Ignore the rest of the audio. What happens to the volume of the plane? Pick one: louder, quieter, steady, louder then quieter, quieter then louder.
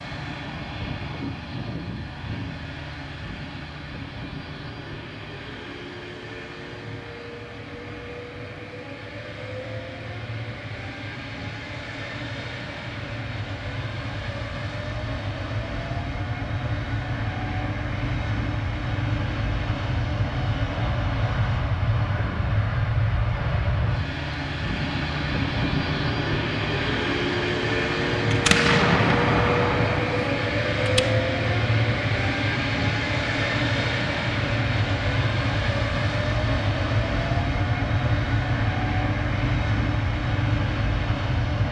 louder.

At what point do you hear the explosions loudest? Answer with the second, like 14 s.
29 s.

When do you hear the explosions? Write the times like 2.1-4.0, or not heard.
28.3-31.1.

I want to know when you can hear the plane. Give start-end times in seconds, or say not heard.
0.0-41.6.